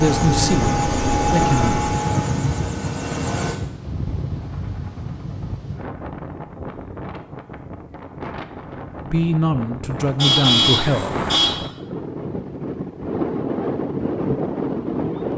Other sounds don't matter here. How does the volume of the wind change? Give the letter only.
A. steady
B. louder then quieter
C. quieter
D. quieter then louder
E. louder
D.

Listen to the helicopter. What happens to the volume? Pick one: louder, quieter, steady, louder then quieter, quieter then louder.
quieter.